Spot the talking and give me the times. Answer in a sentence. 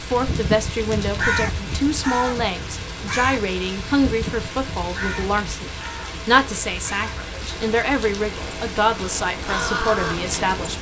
You can hear the talking from 0.0 to 10.7 s.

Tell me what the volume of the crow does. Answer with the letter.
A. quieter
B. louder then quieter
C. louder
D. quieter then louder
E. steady
D.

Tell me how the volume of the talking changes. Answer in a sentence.
The volume of the talking stays about the same.